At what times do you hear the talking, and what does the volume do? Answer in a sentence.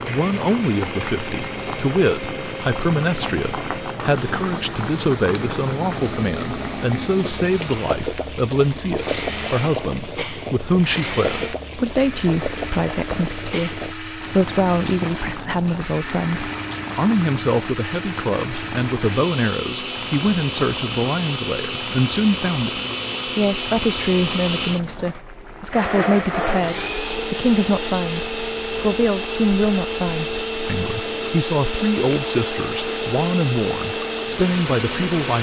You can hear the talking from 0.1 to 35.3 s, at a steady volume.